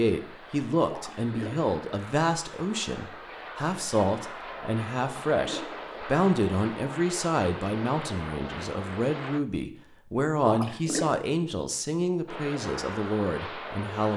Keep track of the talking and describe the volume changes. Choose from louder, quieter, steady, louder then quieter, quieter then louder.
steady.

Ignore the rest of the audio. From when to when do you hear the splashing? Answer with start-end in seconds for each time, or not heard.
0.9-1.7, 5.0-5.8, 10.4-11.2.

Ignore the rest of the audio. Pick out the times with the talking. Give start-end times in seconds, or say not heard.
0.0-14.1.